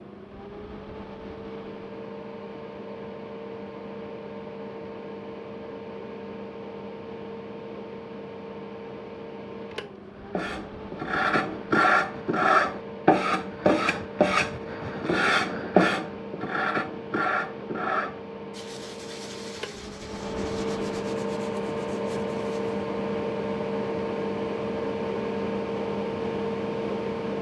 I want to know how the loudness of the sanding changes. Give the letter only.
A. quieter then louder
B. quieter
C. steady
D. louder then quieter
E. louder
B.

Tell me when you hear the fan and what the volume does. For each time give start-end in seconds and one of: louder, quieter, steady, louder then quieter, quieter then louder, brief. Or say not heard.
0.0-27.3 louder.